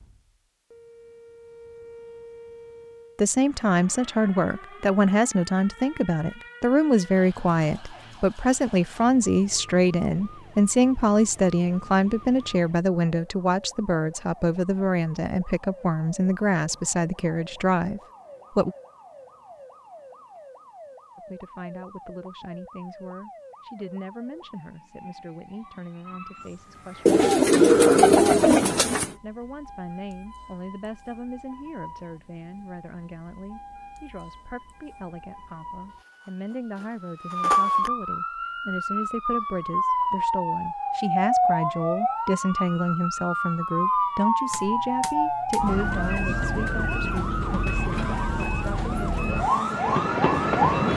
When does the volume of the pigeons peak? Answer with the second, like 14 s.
28 s.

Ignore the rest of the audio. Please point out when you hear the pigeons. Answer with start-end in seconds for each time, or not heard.
27.1-29.1.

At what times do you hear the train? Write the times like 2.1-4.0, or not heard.
49.2-50.9.